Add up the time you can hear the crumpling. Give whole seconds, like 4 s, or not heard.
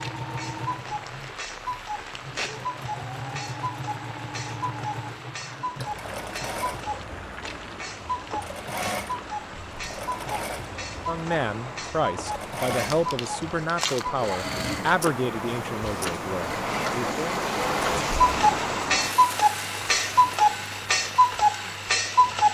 3 s.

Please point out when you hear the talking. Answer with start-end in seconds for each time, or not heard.
11.1-17.4.